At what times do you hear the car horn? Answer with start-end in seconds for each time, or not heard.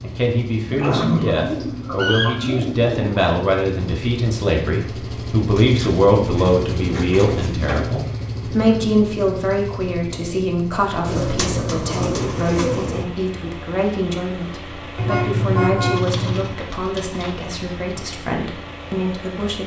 14.9-16.6.